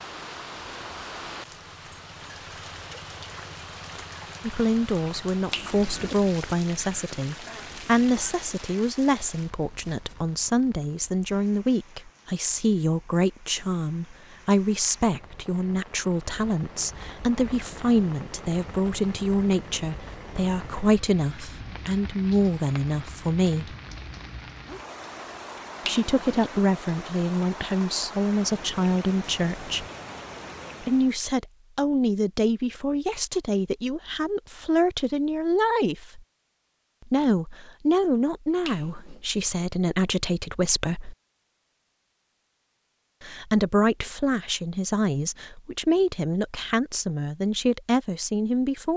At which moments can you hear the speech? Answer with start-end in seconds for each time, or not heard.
4.4-23.8, 25.9-29.9, 30.8-36.2, 37.0-41.1, 43.2-48.9.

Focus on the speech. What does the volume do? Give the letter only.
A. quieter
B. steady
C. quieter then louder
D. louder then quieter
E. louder
B.